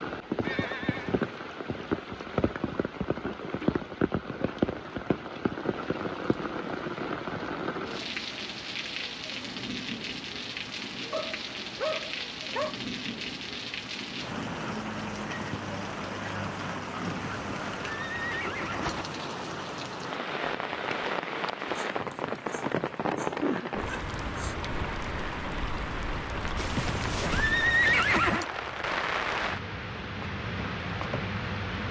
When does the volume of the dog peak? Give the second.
12 s.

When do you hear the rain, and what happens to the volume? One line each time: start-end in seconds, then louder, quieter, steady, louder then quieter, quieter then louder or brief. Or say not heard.
0.0-31.8 steady.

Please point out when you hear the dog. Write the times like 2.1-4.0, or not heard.
11.1-12.8, 21.7-24.6.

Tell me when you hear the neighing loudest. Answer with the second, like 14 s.
28 s.